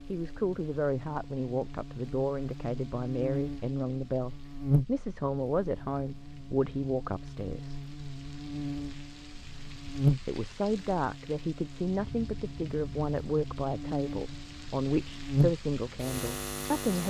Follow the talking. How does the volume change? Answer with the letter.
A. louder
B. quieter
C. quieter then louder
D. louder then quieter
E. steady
E.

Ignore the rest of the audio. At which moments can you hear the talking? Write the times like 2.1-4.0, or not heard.
0.1-7.8, 10.2-17.0.